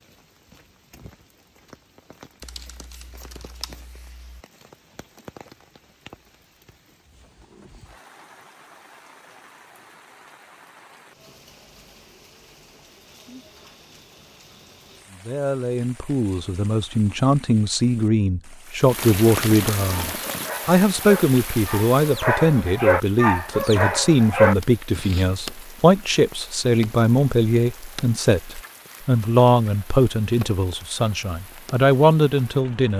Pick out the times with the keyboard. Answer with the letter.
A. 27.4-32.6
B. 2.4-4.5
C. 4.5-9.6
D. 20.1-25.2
B.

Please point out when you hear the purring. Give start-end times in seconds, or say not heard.
not heard.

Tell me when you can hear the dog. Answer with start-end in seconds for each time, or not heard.
20.1-25.2.